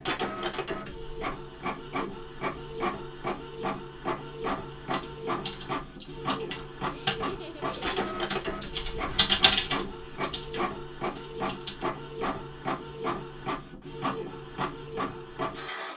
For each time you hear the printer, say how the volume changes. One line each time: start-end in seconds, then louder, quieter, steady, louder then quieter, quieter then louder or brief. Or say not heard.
0.0-15.9 steady.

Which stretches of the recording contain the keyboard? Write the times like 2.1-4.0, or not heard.
4.8-11.8.